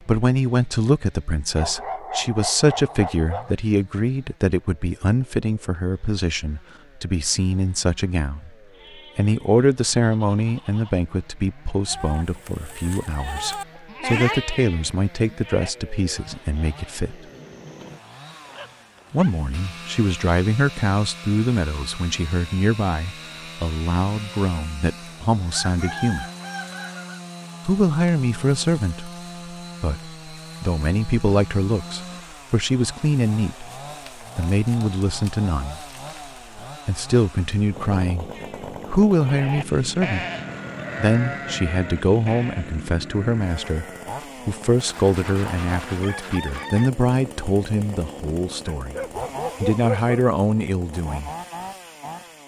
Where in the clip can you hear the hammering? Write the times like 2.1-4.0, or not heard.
not heard.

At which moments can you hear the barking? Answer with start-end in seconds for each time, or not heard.
1.6-3.5, 18.3-19.4, 48.6-50.2.